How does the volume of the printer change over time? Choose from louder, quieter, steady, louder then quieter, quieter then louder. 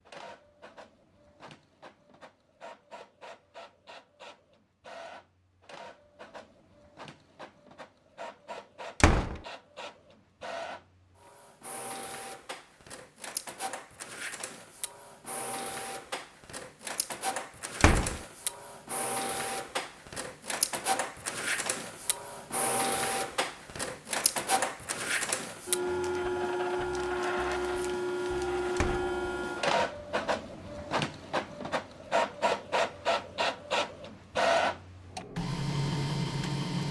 louder.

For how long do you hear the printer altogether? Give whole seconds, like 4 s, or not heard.
37 s.